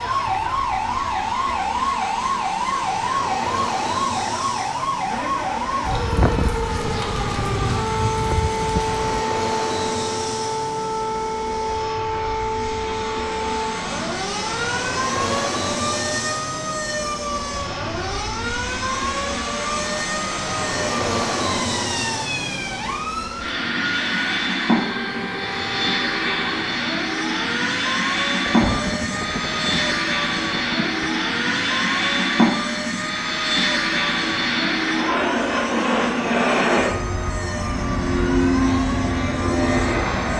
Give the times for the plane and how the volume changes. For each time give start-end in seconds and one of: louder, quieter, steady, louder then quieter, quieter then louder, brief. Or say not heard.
0.0-40.3 louder.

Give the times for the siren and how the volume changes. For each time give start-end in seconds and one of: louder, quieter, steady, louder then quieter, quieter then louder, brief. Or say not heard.
0.0-40.3 quieter.